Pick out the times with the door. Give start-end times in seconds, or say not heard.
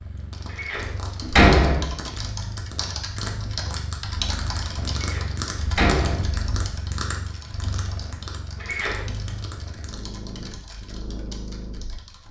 0.6-2.0, 5.0-6.4, 8.6-9.2.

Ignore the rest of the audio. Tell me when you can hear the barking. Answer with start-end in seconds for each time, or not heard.
not heard.